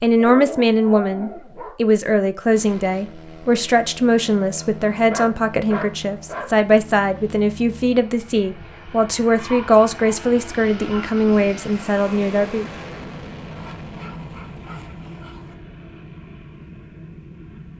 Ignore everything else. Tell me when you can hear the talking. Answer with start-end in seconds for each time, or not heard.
0.0-12.7.